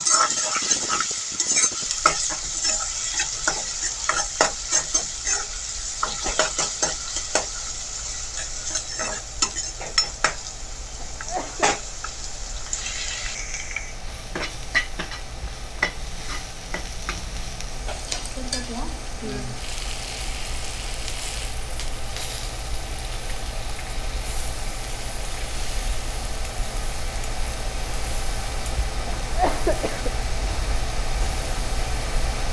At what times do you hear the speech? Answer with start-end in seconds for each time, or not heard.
not heard.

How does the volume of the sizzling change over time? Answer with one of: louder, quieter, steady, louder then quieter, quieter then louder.
quieter.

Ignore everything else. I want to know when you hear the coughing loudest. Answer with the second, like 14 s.
30 s.